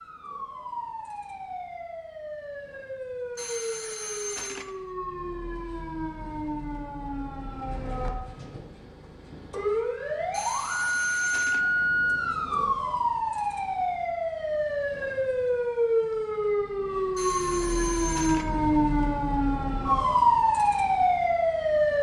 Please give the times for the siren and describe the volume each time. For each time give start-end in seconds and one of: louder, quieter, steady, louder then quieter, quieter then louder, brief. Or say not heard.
0.0-21.9 louder.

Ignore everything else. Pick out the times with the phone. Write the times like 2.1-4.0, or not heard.
3.4-4.8, 10.3-11.6, 17.1-18.5.